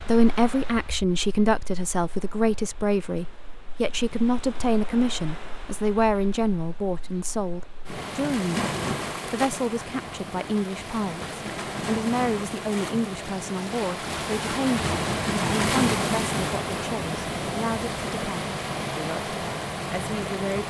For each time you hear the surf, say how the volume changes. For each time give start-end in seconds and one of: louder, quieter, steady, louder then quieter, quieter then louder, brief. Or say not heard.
0.0-20.6 louder.